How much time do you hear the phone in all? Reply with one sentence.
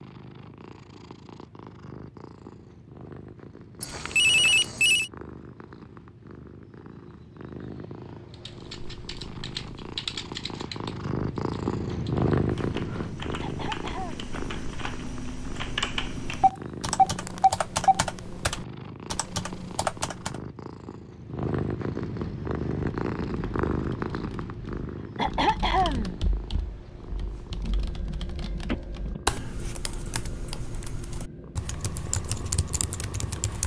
You can hear the phone for 4 seconds altogether.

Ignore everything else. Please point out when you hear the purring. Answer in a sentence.
The purring can be heard from 0.0 to 33.6 s.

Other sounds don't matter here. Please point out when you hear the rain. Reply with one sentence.
You can't hear the rain here.